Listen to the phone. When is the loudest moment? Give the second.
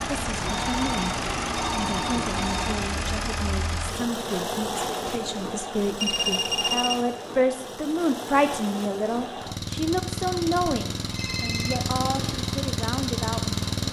6 s.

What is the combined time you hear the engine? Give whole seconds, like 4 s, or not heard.
14 s.